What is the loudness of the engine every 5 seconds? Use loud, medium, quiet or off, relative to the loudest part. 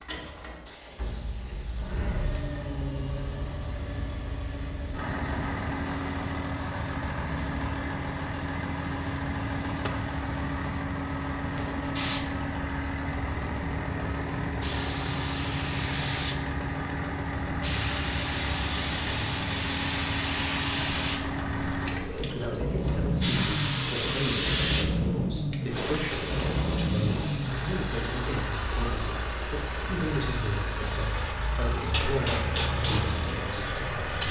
medium, loud, loud, loud, loud, loud, loud.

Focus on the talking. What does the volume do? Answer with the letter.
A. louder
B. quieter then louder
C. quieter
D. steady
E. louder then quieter
D.